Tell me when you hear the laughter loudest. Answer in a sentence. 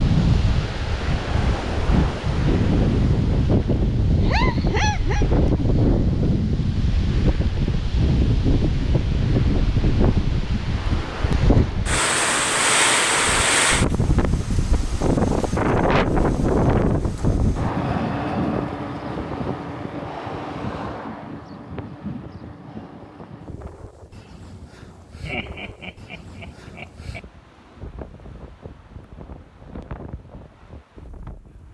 The volume of the laughter peaks at 5 seconds.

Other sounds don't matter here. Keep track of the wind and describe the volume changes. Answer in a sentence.
The volume of the wind goes down.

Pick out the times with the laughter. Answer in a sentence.
The laughter can be heard from 4.2 to 5.2 s and from 25.2 to 27.2 s.